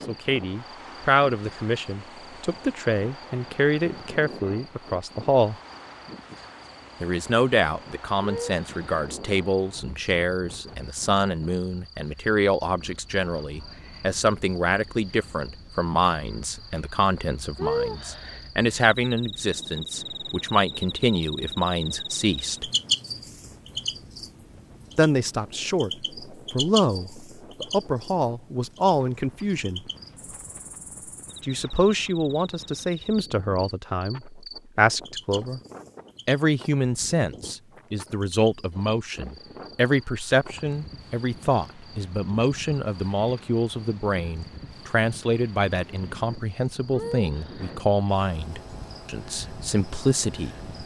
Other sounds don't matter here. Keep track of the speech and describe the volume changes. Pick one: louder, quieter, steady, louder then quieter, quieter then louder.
steady.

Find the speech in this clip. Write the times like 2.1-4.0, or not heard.
0.1-5.5, 7.0-22.7, 24.9-29.9, 31.4-35.6, 36.2-50.7.